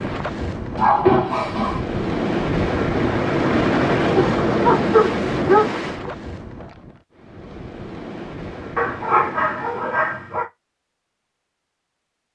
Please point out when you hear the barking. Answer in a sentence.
The barking can be heard from 0.8 to 1.8 s, from 4.2 to 6.1 s and from 8.8 to 10.4 s.